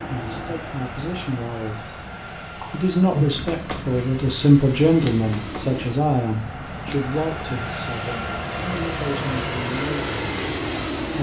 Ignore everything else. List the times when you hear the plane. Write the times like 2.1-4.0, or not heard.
0.0-11.1.